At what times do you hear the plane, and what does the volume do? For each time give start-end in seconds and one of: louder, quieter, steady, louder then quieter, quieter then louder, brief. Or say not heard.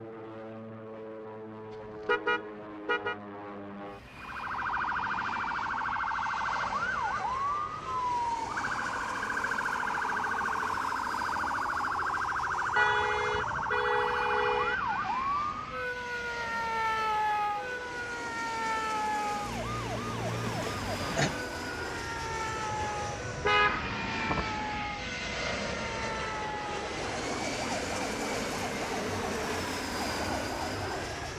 0.0-31.3 louder.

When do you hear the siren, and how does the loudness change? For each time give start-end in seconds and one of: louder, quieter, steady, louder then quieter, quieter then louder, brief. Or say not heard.
4.2-31.3 quieter.